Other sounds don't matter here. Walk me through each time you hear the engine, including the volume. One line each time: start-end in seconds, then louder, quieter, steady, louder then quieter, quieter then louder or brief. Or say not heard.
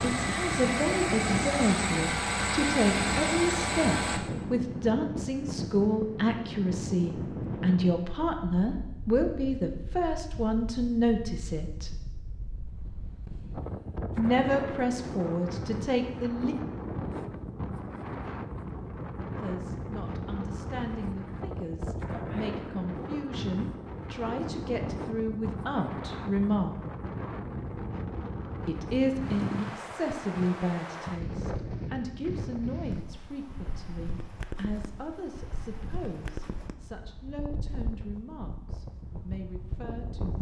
0.0-4.2 steady.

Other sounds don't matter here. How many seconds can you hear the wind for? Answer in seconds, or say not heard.
40 s.